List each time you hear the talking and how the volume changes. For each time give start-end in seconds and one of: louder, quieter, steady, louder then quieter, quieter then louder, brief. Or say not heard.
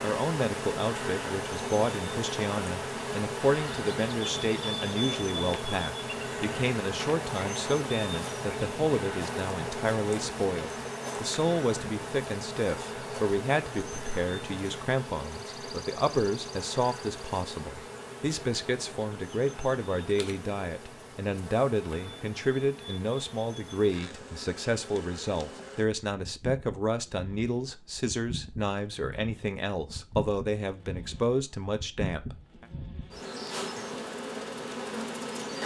0.0-32.6 steady.